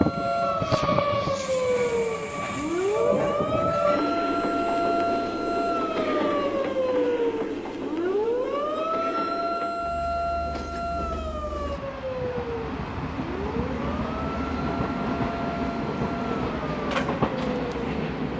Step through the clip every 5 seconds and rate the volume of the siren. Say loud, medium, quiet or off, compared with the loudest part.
loud, loud, medium, medium.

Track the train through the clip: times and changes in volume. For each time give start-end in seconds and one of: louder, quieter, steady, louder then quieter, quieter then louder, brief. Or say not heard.
0.0-18.3 quieter then louder.